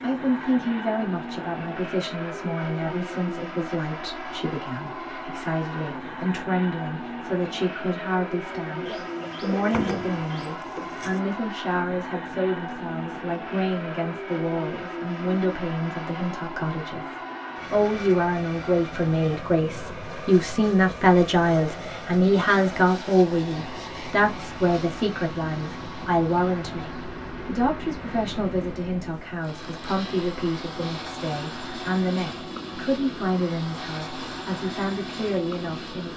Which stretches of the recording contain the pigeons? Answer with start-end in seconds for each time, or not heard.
8.8-11.2.